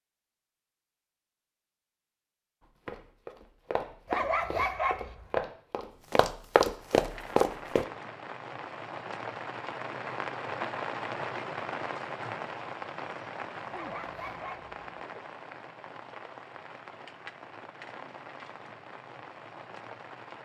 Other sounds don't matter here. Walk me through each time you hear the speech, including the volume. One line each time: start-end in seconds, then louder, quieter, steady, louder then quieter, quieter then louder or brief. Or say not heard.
not heard.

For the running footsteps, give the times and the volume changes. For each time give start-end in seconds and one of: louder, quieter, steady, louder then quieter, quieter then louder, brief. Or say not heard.
2.9-7.8 louder.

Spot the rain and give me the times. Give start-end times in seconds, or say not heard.
6.6-20.4.